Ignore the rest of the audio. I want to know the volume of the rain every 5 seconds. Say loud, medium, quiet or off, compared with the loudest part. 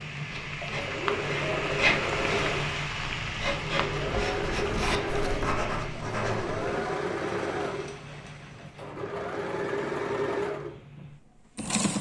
loud, medium, off.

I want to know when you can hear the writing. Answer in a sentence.
The writing can be heard from 0.3 to 6.9 s.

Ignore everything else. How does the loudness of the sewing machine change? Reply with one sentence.
The loudness of the sewing machine stays about the same.